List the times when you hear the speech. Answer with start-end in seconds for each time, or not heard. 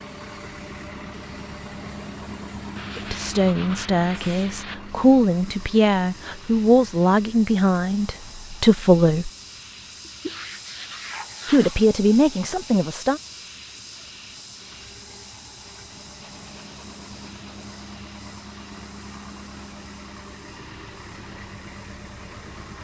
3.0-9.3, 11.5-13.2.